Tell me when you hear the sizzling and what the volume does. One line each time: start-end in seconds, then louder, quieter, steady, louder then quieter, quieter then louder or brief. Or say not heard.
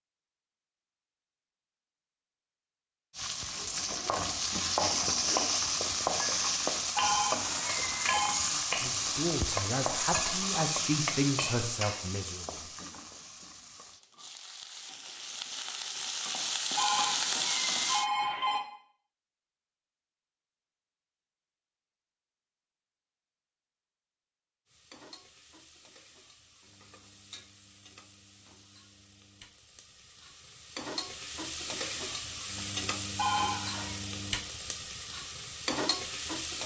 3.1-18.1 quieter then louder
24.6-36.6 louder.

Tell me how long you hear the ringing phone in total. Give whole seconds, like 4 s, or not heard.
4 s.